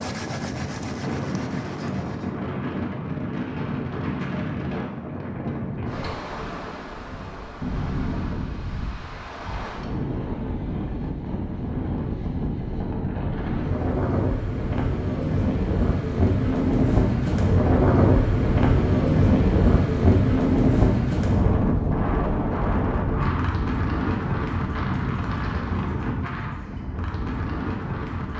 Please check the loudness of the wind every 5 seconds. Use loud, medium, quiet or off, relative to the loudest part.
medium, medium, medium, loud, loud, medium.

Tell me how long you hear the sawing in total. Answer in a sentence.
You can hear the sawing for 2 seconds altogether.